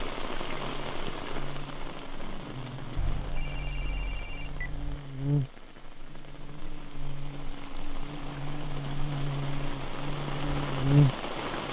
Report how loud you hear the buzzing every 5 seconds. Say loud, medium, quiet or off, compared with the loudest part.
quiet, medium, loud.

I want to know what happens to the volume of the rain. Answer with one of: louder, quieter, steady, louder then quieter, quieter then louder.
quieter then louder.